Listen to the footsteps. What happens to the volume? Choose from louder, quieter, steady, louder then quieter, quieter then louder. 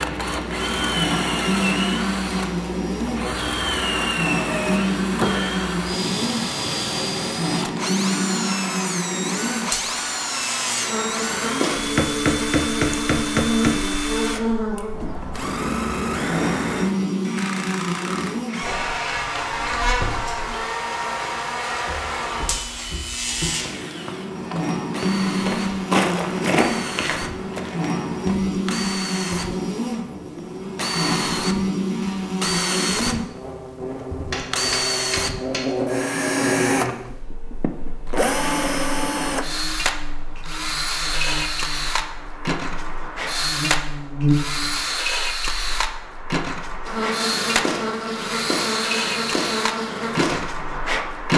louder then quieter.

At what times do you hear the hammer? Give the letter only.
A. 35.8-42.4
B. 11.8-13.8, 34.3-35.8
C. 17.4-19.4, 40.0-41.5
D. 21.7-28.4
B.